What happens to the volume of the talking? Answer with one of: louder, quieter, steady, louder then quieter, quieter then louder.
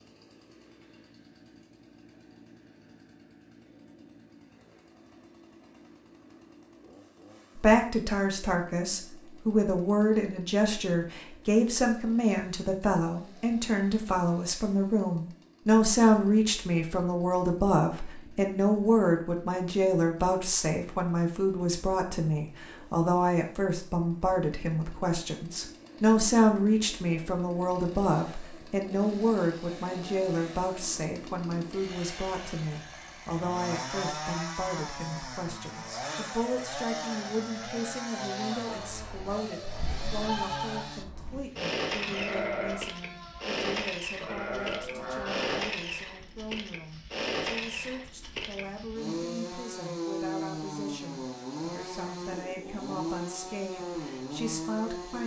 quieter.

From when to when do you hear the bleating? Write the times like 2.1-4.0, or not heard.
38.9-45.6.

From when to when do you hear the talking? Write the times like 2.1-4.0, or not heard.
7.5-55.2.